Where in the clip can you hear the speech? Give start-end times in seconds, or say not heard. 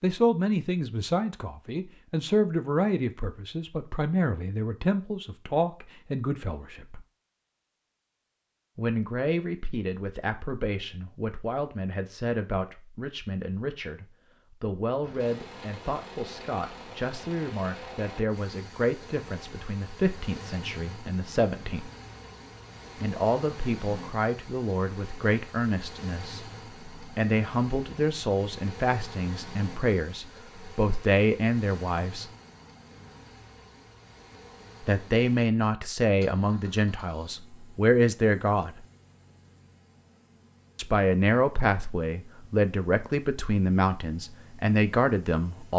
0.0-7.0, 8.8-21.9, 23.0-32.3, 34.8-38.9, 40.8-45.7.